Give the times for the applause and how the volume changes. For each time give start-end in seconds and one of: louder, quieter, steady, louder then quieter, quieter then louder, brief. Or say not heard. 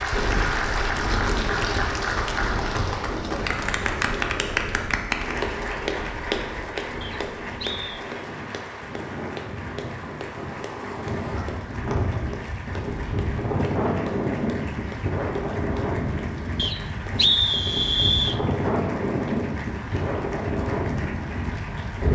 0.0-22.0 quieter.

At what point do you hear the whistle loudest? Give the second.
17 s.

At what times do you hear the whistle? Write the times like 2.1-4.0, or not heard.
7.0-8.0, 16.6-18.4.